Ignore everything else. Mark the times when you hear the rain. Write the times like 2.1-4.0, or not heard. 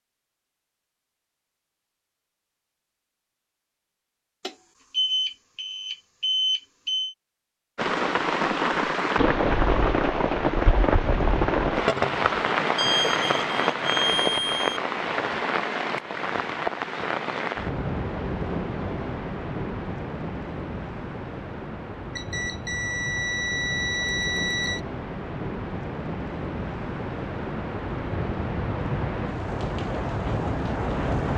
7.8-31.3.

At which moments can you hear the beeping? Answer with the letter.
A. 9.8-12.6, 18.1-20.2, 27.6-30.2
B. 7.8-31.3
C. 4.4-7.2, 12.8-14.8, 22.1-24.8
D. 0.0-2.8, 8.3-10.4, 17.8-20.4
C.